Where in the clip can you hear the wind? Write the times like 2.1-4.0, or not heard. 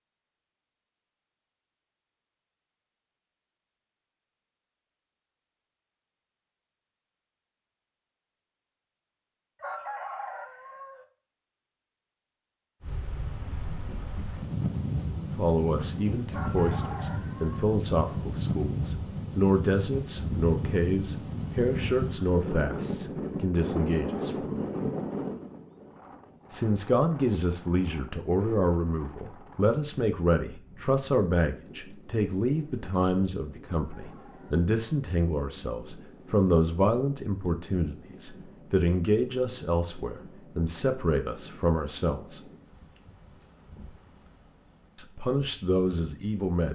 12.8-46.6.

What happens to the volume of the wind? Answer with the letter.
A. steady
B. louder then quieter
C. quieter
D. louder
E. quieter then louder
C.